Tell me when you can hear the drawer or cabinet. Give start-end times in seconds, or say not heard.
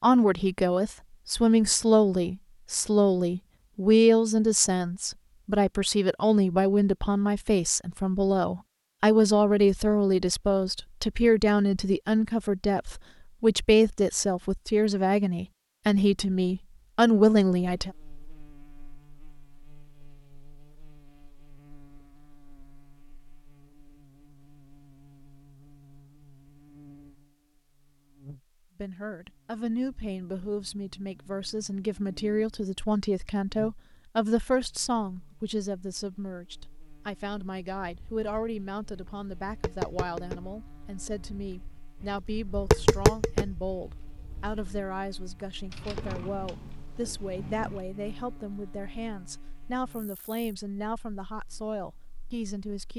45.6-47.9.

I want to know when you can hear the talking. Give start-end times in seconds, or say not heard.
0.0-17.9, 28.8-52.9.